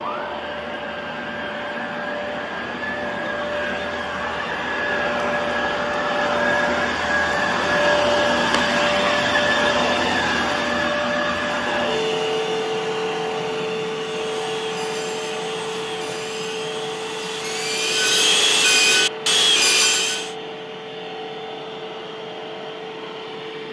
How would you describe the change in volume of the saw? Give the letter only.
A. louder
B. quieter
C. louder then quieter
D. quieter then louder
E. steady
A.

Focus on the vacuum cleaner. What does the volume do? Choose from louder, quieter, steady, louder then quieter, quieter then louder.
louder then quieter.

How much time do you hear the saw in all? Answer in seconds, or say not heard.
6 s.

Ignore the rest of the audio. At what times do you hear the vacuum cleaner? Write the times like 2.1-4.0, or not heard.
0.0-23.6.